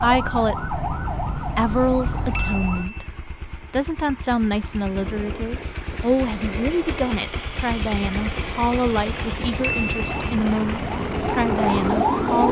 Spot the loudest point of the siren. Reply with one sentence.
The loudest moment of the siren is at 12 seconds.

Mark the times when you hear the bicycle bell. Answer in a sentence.
The bicycle bell can be heard from 2.4 to 3.0 s and from 9.6 to 10.2 s.